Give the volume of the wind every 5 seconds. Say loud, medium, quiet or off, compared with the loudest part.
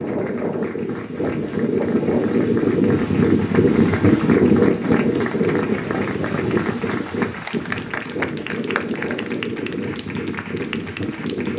loud, medium, medium.